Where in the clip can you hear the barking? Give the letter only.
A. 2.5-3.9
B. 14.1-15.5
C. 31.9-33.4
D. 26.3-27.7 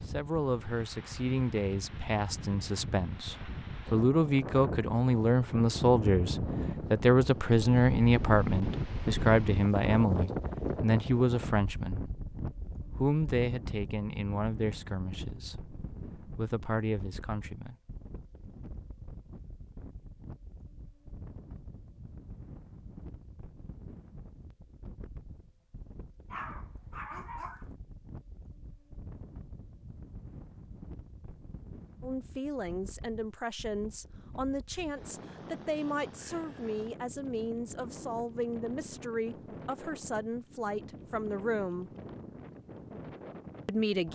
D.